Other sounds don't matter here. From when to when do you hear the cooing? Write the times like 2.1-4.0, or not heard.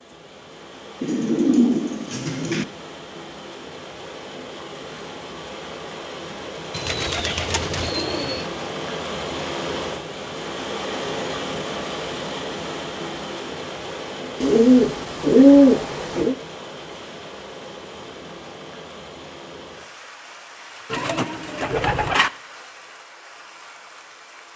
1.0-2.6, 6.7-8.4, 14.4-16.4, 20.9-22.3.